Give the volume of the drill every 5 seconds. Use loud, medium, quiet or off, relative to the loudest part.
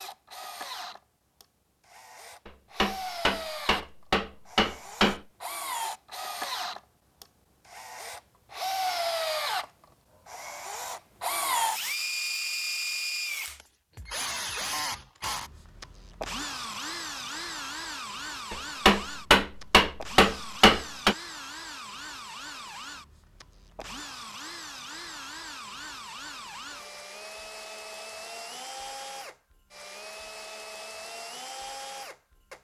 medium, loud, loud, medium, medium, medium, medium.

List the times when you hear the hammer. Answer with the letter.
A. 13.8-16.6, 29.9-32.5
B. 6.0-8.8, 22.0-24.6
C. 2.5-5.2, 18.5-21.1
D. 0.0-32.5
C.